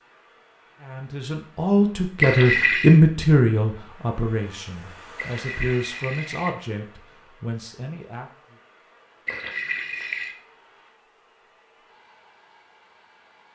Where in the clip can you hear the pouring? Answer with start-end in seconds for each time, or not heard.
2.2-3.0, 5.2-6.5, 9.2-10.3.